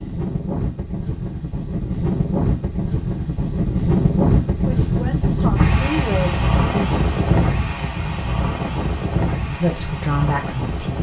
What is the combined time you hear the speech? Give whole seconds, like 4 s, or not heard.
4 s.